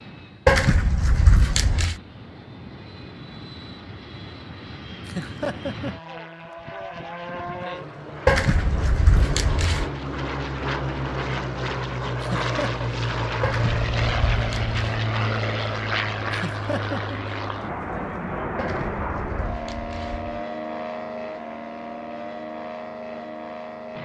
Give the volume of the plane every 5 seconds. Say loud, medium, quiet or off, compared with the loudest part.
quiet, medium, loud, loud, medium.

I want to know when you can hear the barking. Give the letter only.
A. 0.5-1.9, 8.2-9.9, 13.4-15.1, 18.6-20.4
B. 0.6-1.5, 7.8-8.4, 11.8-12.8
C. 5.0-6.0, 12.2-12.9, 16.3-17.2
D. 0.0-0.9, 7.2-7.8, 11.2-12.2
A.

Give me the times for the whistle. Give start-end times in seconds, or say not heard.
not heard.